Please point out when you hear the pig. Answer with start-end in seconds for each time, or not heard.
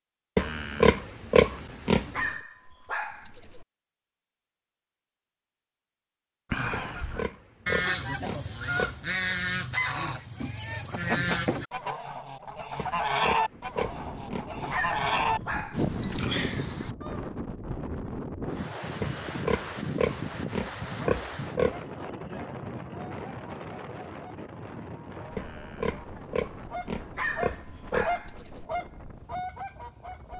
0.3-2.3, 6.8-9.1, 12.8-14.4, 19.0-21.9, 25.4-28.1.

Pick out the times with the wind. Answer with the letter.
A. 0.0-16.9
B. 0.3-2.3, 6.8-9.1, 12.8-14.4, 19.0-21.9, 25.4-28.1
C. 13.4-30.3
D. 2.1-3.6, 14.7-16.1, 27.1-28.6
C.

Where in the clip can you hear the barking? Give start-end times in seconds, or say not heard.
2.1-3.6, 14.7-16.1, 27.1-28.6.